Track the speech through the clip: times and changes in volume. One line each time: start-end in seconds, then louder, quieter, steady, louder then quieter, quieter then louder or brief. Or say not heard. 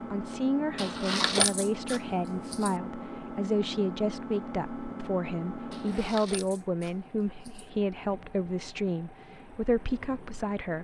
0.1-10.7 steady.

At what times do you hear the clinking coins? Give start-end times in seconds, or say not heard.
0.8-2.7, 5.7-7.7.